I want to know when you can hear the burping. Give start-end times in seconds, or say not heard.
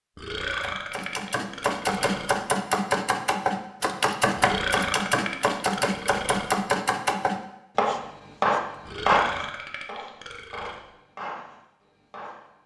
0.1-2.4, 4.3-6.5, 8.8-10.8.